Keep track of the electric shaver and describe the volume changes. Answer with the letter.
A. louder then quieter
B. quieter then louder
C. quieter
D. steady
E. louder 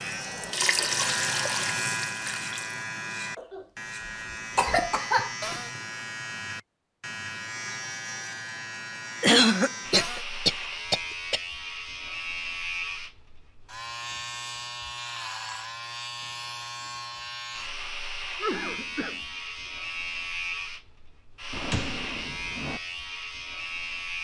D.